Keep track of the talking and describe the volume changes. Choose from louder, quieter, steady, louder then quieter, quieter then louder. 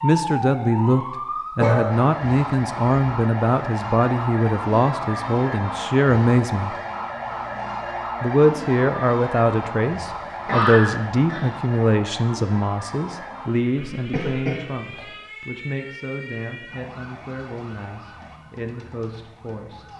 quieter.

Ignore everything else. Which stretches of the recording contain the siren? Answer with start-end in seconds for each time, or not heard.
0.0-19.9.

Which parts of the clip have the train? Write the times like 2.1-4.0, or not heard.
not heard.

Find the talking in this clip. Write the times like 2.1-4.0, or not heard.
0.0-6.8, 8.2-19.9.